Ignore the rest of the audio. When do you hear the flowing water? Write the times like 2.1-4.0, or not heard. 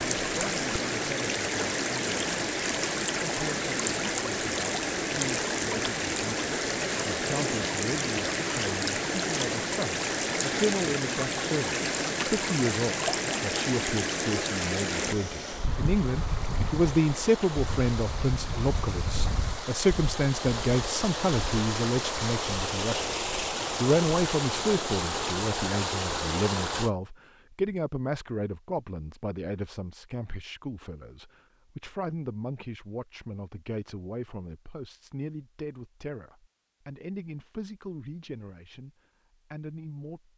0.0-26.9.